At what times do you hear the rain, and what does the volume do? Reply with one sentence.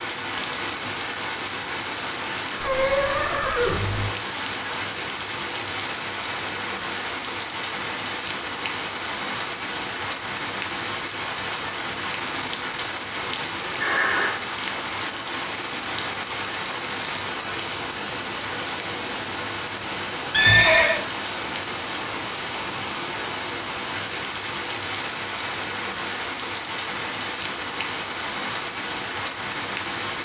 You can hear the rain from 0.0 to 30.1 s, at a steady volume.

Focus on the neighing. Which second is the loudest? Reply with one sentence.
The loudest moment of the neighing is at 21 seconds.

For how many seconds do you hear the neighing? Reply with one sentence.
You can hear the neighing for 3 seconds altogether.